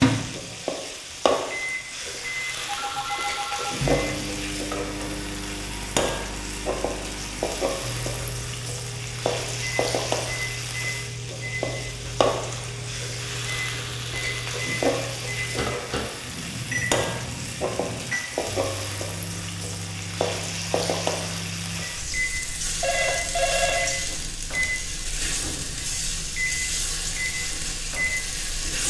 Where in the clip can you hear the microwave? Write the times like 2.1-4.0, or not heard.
0.0-28.8.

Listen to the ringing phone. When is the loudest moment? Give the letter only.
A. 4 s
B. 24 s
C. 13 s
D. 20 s
B.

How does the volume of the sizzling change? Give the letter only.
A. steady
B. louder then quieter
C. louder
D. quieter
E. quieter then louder
A.